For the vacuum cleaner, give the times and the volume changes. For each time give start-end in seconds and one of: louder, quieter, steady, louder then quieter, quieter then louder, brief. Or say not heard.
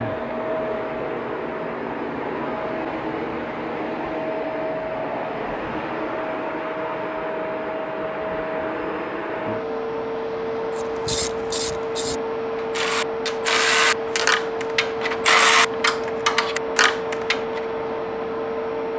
0.0-18.9 steady.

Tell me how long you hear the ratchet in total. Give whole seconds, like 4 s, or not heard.
7 s.